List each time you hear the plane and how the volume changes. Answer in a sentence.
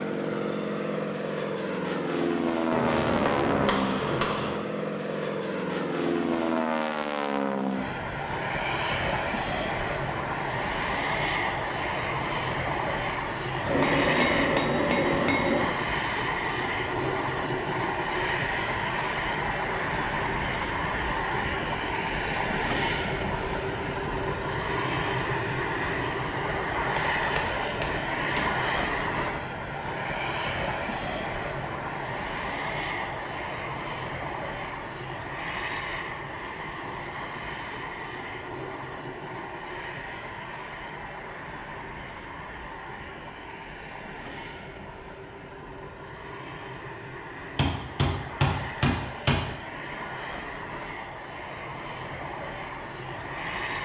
The plane can be heard from 0.0 to 53.8 s, getting quieter.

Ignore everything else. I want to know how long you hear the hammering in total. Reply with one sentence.
The hammering can be heard for 7 seconds in total.